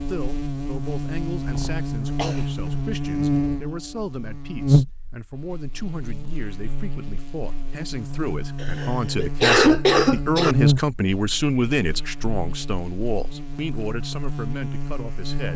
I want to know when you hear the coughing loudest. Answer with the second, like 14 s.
10 s.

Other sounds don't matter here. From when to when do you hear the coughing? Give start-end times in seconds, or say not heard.
1.4-2.9, 8.6-10.6.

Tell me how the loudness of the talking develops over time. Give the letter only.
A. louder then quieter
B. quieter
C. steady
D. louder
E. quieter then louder
A.